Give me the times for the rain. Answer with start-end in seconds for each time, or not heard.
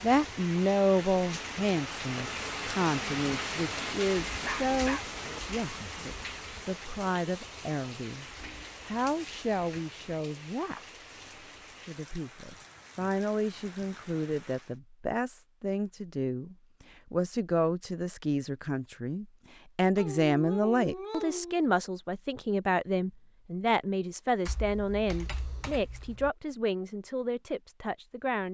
0.0-14.8.